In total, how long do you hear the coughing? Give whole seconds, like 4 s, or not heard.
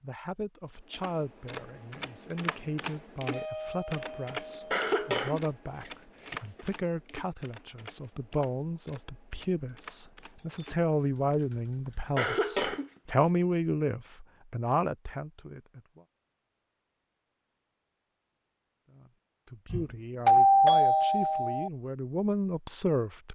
3 s.